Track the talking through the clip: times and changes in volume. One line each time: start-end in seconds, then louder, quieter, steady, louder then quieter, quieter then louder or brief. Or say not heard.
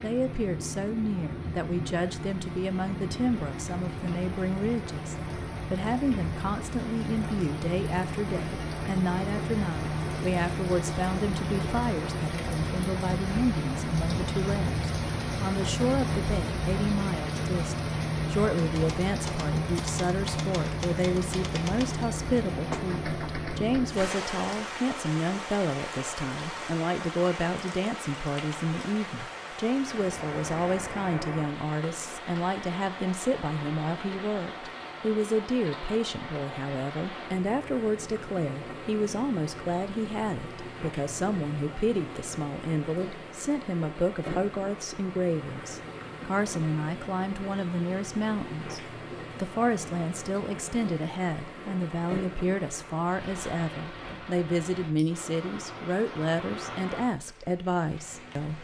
0.0-58.5 steady.